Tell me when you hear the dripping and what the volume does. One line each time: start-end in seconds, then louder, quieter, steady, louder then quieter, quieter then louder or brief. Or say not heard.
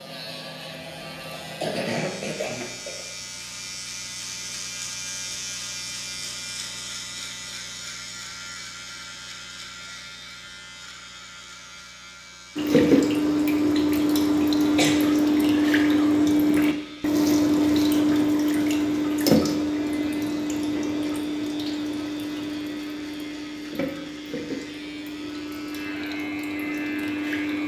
12.6-27.6 quieter.